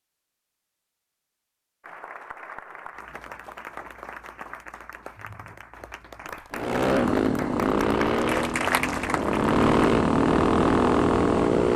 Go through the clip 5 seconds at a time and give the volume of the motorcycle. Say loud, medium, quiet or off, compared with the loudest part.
off, loud, loud.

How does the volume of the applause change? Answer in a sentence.
The volume of the applause goes up.